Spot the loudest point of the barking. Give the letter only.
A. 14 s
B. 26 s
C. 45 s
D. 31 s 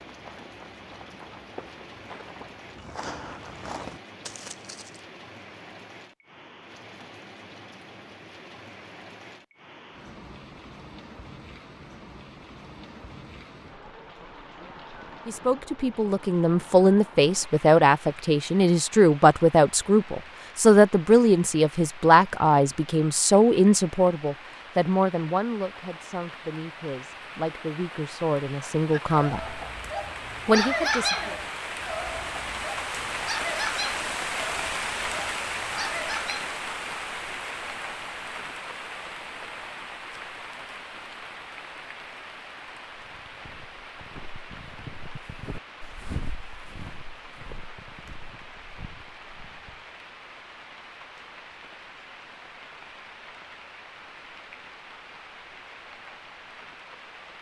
D.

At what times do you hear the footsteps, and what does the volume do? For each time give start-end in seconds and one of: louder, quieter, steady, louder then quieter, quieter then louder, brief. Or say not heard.
0.0-5.0 louder
43.0-49.9 louder then quieter.